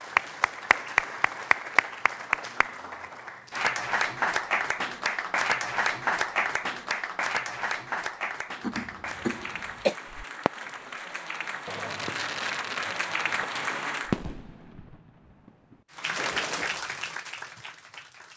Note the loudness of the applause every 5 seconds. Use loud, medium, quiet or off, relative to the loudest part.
loud, loud, medium, medium.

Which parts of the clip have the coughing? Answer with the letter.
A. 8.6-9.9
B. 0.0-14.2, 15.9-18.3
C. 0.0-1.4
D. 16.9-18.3
A.